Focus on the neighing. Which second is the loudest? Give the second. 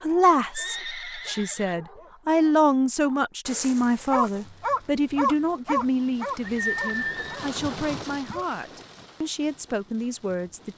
7 s.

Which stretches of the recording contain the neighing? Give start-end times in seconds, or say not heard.
0.5-1.8, 6.4-8.1.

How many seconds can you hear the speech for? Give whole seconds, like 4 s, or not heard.
11 s.